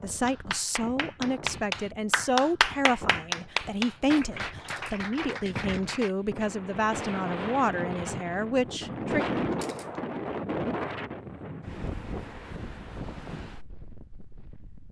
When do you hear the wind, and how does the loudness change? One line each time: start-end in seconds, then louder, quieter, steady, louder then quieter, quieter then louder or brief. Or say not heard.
0.0-14.8 louder then quieter.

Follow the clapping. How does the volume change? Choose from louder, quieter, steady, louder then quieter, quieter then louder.
louder then quieter.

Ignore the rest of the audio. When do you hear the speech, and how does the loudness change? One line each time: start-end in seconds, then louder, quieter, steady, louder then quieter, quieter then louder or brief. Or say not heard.
0.0-9.4 steady.